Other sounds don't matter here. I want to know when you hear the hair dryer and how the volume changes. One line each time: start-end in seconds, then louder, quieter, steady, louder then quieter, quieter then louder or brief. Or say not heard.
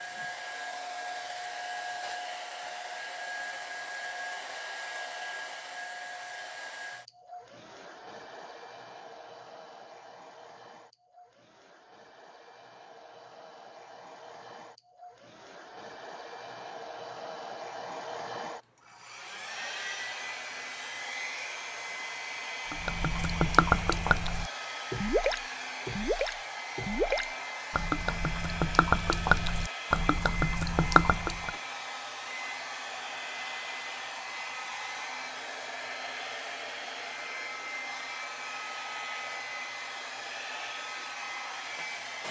0.0-42.2 quieter then louder.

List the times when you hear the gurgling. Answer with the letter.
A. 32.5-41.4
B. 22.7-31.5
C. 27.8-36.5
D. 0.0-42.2
B.